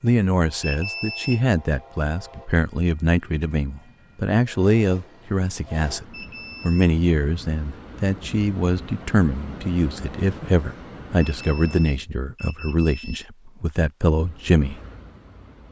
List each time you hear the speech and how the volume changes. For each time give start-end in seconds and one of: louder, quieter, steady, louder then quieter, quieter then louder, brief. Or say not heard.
0.0-14.8 steady.